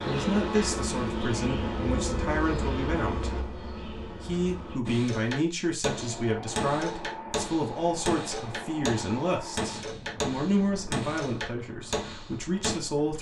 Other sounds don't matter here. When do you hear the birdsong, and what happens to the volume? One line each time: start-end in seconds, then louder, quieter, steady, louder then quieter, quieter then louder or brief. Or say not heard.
not heard.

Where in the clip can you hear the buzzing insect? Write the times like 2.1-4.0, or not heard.
0.0-4.8.